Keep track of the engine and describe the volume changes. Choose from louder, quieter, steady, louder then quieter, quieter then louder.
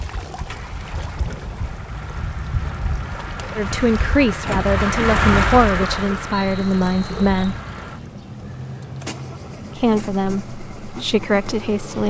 louder then quieter.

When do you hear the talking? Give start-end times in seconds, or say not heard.
3.5-7.6, 9.8-12.0.